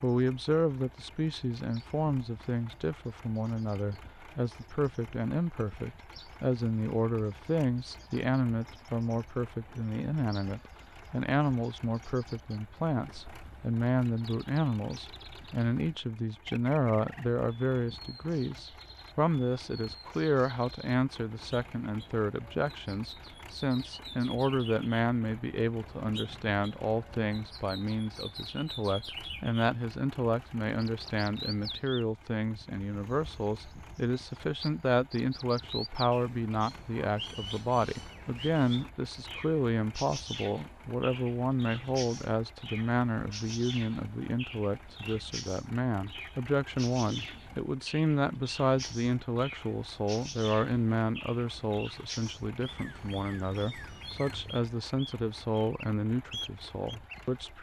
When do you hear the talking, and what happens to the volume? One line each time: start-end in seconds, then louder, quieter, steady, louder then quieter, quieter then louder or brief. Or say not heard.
0.0-57.5 steady.